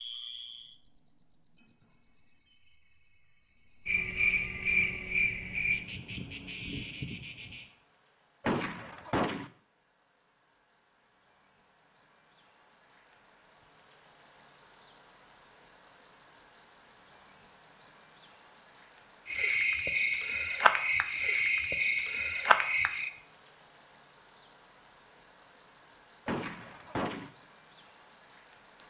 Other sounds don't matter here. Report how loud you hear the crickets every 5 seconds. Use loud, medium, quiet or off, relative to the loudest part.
loud, medium, medium, loud, loud, loud.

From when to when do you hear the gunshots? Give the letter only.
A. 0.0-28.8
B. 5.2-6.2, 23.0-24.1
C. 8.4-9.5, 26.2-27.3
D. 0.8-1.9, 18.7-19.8
C.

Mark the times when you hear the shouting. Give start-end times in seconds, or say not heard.
not heard.